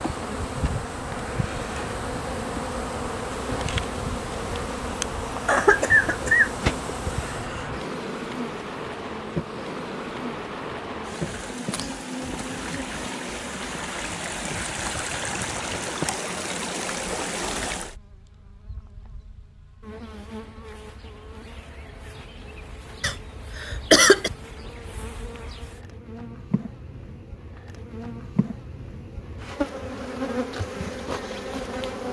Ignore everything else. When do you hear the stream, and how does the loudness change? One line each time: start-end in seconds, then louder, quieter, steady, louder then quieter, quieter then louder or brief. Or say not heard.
0.0-17.9 louder.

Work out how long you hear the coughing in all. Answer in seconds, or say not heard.
3 s.